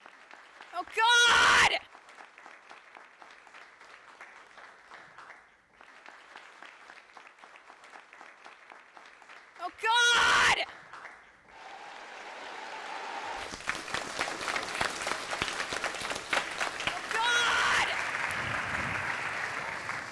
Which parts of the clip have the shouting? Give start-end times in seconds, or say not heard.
0.7-1.8, 9.6-10.7, 16.9-17.9.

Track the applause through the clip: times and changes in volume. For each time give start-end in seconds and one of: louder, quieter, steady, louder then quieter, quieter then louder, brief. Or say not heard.
0.0-20.0 louder.